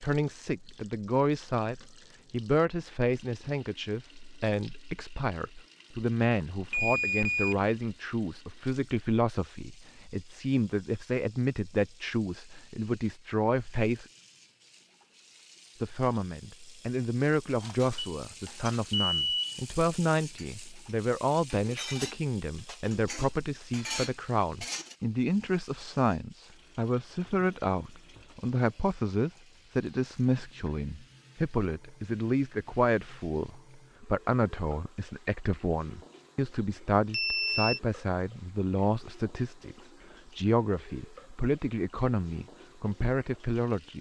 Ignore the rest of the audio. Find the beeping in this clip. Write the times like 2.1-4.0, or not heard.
6.7-7.7, 17.9-19.6, 37.1-37.8.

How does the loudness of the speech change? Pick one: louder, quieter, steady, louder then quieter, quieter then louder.
steady.